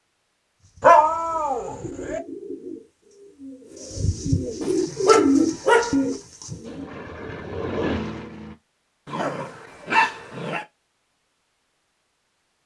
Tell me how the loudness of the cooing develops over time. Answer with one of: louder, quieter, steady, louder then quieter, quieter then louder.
louder.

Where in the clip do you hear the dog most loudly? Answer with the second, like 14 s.
1 s.